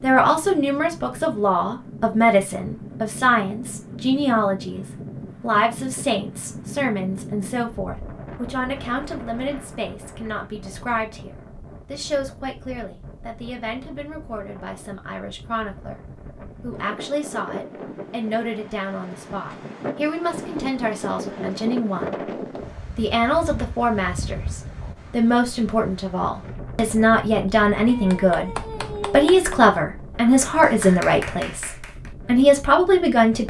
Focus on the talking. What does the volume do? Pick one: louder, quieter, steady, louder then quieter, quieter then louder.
quieter then louder.